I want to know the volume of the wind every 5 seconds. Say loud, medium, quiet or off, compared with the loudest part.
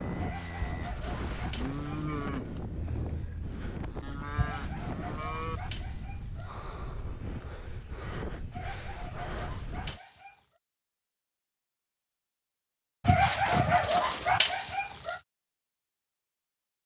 loud, loud, off, off.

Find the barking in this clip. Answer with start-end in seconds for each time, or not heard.
0.1-2.4, 4.3-6.5, 8.5-10.4, 13.0-15.2.